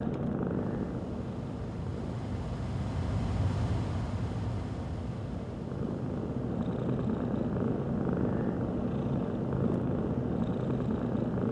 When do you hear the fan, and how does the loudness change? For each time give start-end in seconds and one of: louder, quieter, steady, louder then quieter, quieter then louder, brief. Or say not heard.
0.0-11.4 louder then quieter.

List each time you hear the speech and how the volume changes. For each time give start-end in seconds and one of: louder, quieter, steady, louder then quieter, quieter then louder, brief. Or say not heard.
not heard.